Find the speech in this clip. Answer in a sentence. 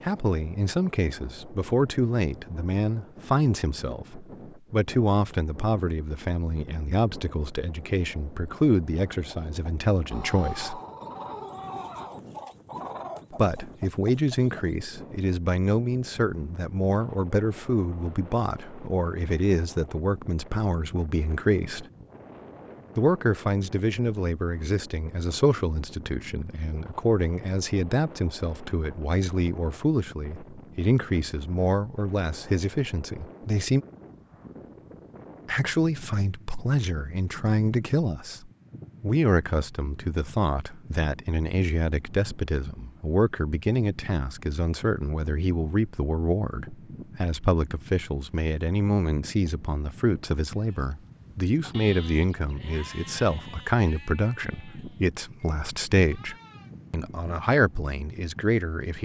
The speech can be heard from 0.0 to 10.8 s, from 13.3 to 21.9 s, from 22.9 to 33.9 s and from 35.5 to 59.0 s.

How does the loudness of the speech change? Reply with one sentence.
The volume of the speech stays about the same.